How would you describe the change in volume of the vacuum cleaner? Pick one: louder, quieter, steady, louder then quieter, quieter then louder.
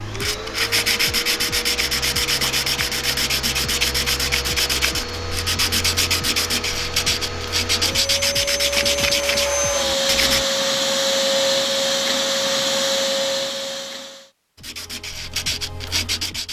louder.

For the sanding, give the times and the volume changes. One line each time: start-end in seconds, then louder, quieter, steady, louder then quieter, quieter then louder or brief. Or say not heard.
0.0-10.4 steady
14.6-16.4 brief.